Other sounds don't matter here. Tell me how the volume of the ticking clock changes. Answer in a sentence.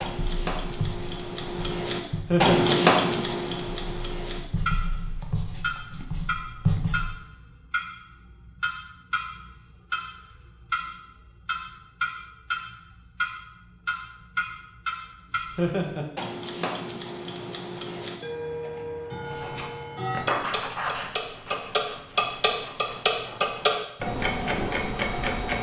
The loudness of the ticking clock goes down, then up.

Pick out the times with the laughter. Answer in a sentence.
You can hear the laughter from 2.2 to 2.8 s and from 15.6 to 16.1 s.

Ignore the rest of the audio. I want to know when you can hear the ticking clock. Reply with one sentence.
The ticking clock can be heard from 0.0 to 25.5 s.